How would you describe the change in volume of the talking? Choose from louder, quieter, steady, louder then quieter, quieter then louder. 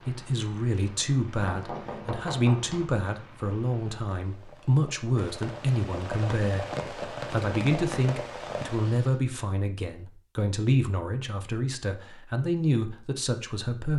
steady.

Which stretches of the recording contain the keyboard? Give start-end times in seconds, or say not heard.
not heard.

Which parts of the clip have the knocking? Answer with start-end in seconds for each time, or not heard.
1.3-2.9.